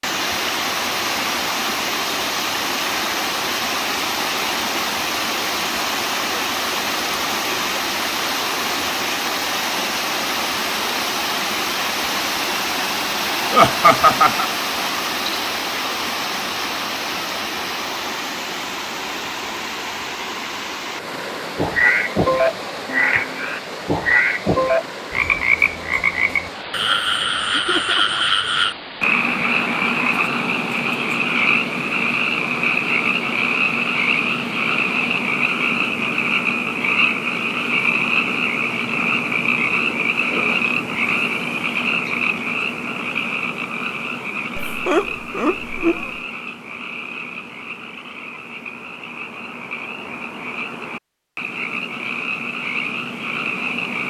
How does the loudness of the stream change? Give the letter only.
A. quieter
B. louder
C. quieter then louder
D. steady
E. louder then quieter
A.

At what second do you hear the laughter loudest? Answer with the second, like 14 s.
14 s.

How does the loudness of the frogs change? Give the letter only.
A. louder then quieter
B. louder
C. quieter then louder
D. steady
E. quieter
E.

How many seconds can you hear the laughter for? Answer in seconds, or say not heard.
3 s.